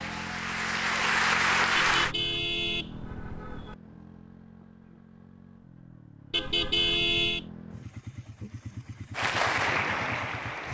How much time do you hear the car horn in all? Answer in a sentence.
The car horn can be heard for 3 seconds in total.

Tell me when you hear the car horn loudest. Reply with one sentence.
The volume of the car horn peaks at 7 seconds.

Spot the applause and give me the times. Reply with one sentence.
The applause can be heard from 0.0 to 2.1 s and from 9.1 to 10.6 s.